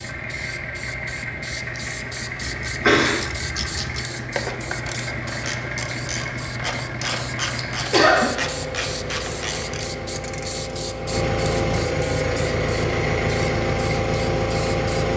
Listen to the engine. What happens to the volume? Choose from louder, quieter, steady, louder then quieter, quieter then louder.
louder.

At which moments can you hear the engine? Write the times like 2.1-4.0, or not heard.
0.0-15.1.